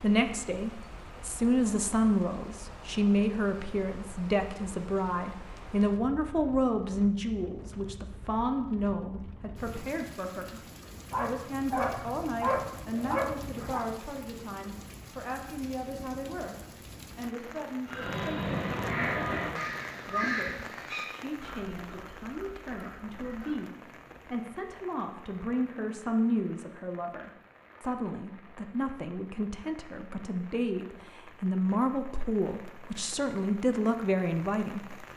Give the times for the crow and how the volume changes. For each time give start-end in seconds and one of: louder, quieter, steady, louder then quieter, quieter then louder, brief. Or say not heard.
17.9-23.6 quieter.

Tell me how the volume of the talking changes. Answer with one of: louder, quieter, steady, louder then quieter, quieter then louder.
quieter then louder.